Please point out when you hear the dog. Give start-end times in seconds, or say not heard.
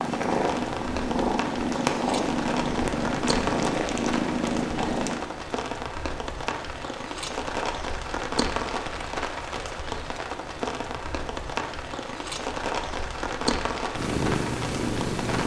not heard.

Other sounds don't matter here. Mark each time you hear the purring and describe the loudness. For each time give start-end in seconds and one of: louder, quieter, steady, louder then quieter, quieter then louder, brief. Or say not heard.
0.0-5.2 steady
13.9-15.4 brief.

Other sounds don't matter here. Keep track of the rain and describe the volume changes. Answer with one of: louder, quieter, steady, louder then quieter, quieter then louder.
steady.